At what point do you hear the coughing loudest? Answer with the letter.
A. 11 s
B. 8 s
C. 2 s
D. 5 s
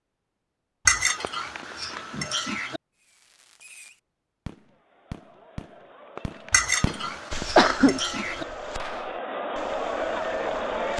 B.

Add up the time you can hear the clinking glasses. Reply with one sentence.
You can hear the clinking glasses for 4 seconds altogether.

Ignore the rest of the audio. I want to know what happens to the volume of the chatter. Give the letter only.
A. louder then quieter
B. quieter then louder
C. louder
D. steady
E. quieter
C.